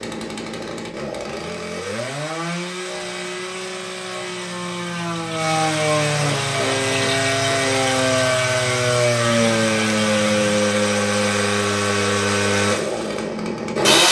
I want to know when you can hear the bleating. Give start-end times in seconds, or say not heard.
not heard.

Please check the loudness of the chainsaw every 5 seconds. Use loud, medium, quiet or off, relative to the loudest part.
medium, loud, loud.